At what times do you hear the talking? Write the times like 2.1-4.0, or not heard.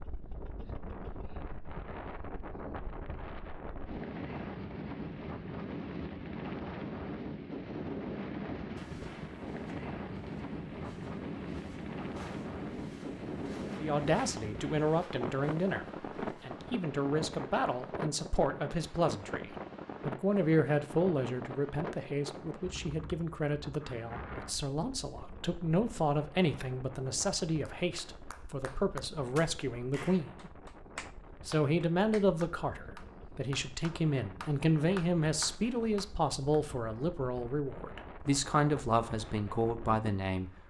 13.8-30.6, 31.4-40.6.